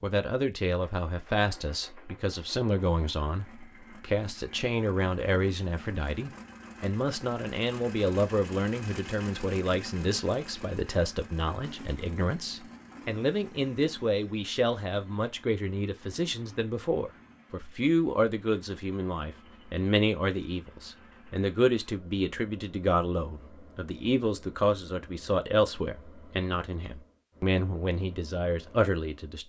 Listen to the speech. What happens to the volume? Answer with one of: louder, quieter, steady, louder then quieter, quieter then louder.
steady.